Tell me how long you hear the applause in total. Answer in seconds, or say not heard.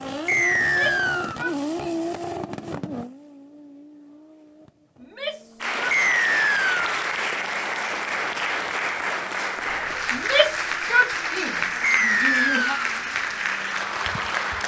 9 s.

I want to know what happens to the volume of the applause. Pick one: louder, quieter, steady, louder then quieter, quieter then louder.
steady.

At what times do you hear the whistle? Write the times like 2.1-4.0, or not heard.
0.2-1.4, 5.9-6.8, 11.8-12.8.